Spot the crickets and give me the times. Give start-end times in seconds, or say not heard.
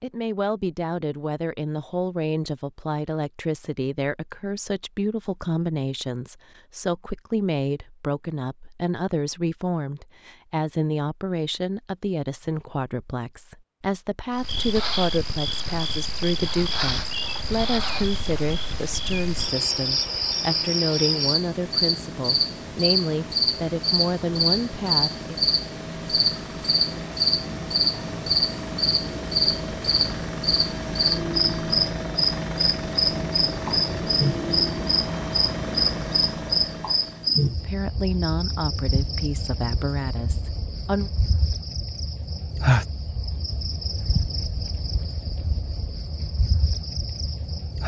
14.3-47.8.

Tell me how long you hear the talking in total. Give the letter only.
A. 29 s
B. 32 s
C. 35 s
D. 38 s
A.